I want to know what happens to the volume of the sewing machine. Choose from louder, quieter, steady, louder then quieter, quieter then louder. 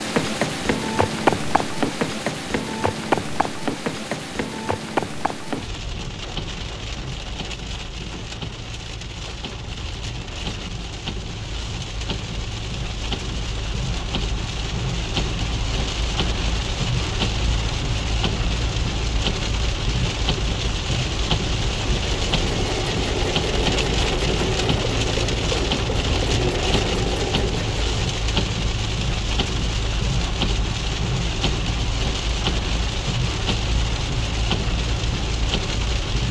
steady.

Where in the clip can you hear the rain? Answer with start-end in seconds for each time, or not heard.
0.0-36.2.